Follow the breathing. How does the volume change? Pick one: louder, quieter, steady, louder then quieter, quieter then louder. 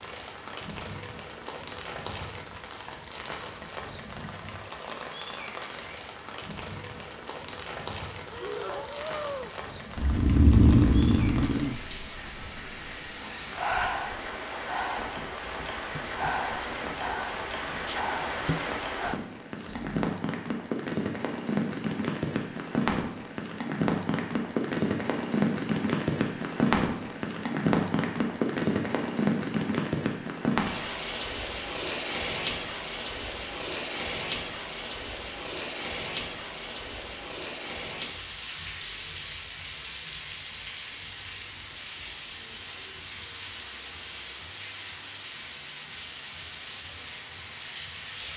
quieter.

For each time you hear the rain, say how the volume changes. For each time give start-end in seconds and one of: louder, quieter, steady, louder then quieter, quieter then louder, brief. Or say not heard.
0.0-48.3 louder then quieter.